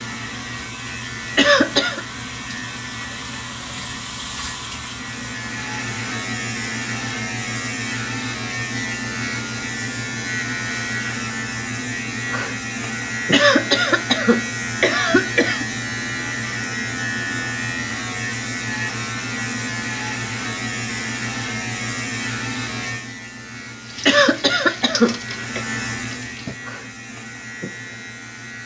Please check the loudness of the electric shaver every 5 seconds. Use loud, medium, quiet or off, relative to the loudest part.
medium, loud, loud, loud, loud, medium.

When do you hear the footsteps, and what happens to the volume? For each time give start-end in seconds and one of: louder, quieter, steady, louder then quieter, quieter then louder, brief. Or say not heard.
not heard.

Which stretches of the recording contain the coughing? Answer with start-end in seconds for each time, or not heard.
1.4-2.0, 13.3-15.7, 24.1-25.6.